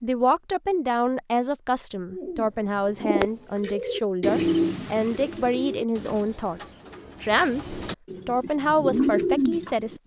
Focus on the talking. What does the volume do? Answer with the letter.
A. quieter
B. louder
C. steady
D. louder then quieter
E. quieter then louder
C.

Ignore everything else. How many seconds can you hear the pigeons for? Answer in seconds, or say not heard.
8 s.